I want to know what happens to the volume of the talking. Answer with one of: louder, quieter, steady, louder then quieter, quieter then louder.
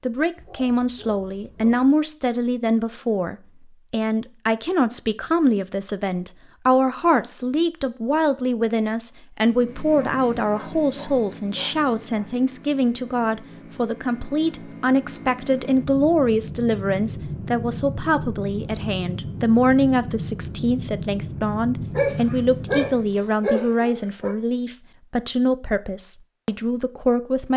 steady.